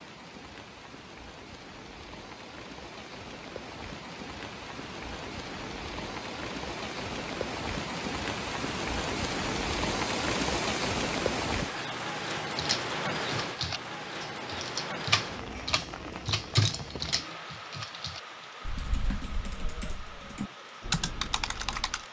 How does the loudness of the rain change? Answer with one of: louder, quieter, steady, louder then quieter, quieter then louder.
louder then quieter.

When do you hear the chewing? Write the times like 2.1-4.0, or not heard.
not heard.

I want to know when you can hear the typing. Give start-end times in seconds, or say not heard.
12.4-22.0.